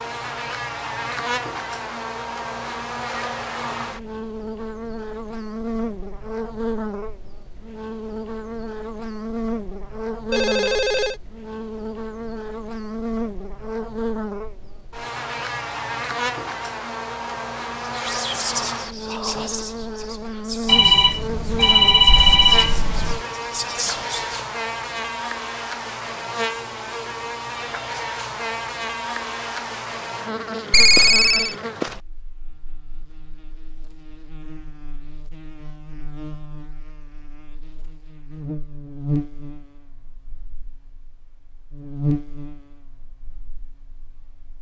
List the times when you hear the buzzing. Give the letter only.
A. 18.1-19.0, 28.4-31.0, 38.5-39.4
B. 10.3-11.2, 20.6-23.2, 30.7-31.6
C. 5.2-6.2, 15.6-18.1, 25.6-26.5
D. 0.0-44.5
D.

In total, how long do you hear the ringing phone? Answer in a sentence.
You can hear the ringing phone for 4 seconds altogether.